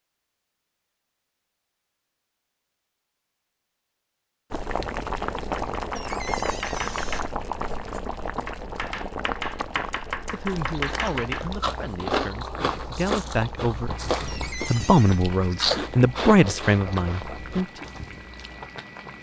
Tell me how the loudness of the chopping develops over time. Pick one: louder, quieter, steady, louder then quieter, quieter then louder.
quieter then louder.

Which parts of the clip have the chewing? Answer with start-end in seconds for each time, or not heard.
10.4-18.6.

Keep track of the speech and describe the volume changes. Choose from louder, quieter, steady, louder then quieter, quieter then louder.
louder.